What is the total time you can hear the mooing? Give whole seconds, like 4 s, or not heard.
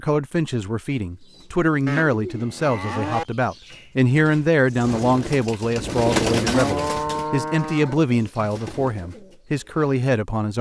3 s.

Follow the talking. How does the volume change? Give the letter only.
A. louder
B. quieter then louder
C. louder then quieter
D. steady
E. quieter
D.